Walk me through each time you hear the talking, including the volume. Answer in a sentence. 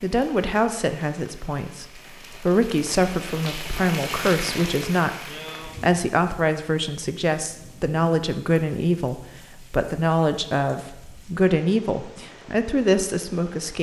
You can hear the talking from 0.0 to 13.7 s, at a steady volume.